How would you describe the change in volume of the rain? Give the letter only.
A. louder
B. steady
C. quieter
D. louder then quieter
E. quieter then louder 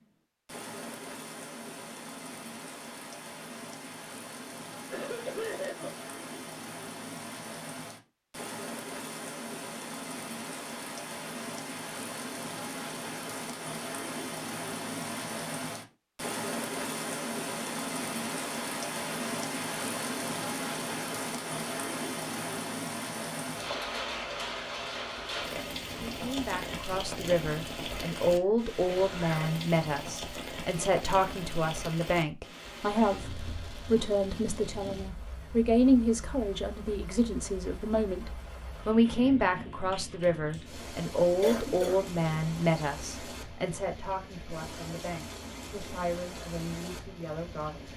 D.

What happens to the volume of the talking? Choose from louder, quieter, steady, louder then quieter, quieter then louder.
quieter.